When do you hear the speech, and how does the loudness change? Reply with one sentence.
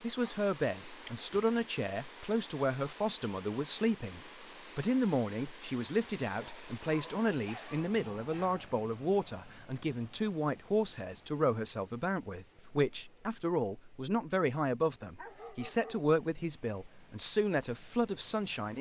You can hear the speech from 0.0 to 18.7 s, at a steady volume.